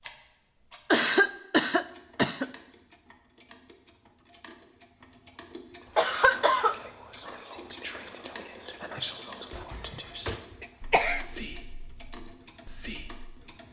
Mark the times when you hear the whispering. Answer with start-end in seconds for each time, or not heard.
5.8-13.4.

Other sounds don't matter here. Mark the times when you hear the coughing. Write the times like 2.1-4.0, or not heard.
0.9-2.5, 6.0-6.8, 9.5-11.2.